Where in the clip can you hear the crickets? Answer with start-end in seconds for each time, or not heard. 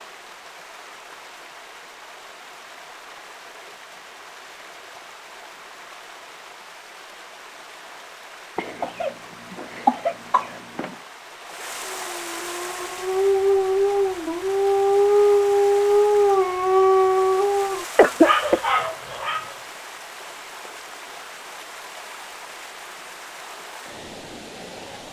not heard.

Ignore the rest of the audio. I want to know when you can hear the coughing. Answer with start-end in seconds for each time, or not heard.
8.6-10.9, 17.9-18.6.